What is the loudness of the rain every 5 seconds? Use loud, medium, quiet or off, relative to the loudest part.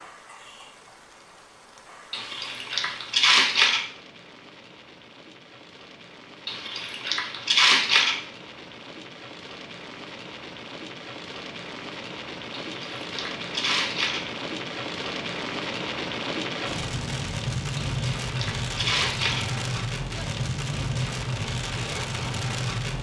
quiet, quiet, medium, loud, loud.